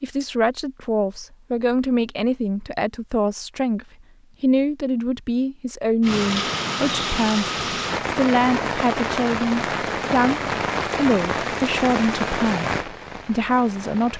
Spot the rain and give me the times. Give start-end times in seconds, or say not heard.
6.0-14.1.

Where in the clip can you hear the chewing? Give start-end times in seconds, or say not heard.
not heard.